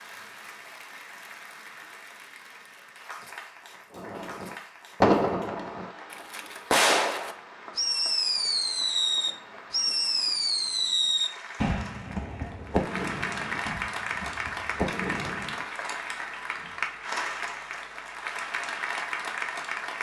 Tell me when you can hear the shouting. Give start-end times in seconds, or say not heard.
not heard.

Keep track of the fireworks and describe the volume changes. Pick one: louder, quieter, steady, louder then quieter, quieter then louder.
quieter.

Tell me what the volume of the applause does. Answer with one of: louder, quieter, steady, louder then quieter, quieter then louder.
louder.